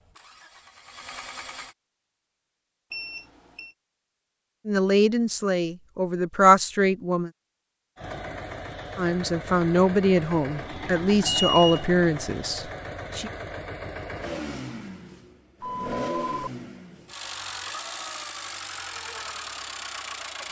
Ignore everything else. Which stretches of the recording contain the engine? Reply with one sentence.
You can hear the engine from 0.0 to 1.8 s and from 8.0 to 20.4 s.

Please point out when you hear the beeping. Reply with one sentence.
The beeping can be heard from 2.9 to 3.8 s, from 11.2 to 11.8 s and from 15.6 to 16.5 s.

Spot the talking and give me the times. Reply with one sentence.
The talking can be heard from 4.7 to 7.3 s and from 8.9 to 13.3 s.